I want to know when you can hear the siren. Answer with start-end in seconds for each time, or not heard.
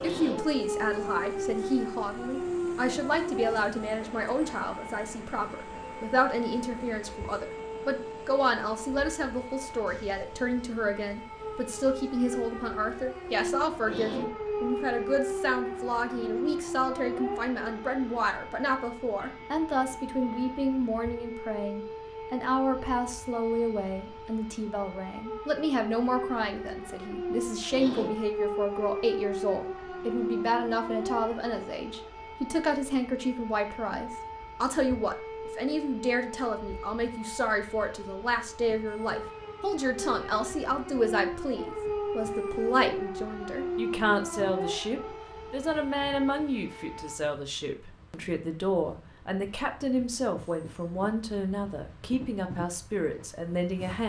0.0-47.2.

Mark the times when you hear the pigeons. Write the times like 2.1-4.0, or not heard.
not heard.